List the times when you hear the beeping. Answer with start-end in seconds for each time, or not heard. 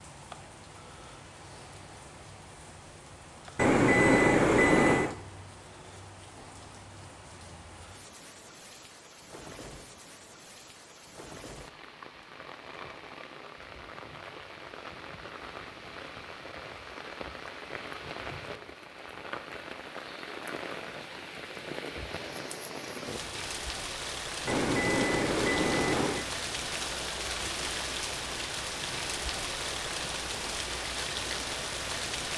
3.5-5.2, 24.4-26.2.